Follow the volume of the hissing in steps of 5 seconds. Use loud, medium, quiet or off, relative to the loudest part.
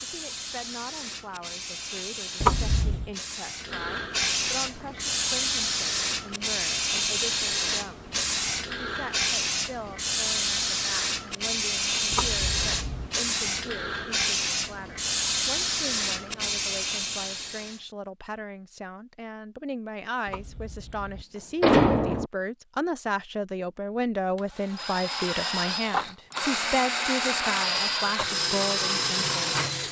medium, loud, loud, loud, off, off.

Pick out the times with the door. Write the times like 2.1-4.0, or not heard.
2.4-3.0, 12.1-13.1, 20.2-22.3.